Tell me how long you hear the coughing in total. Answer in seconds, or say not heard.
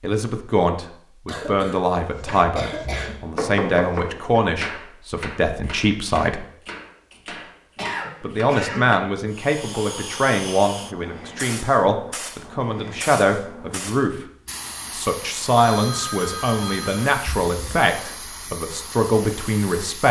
4 s.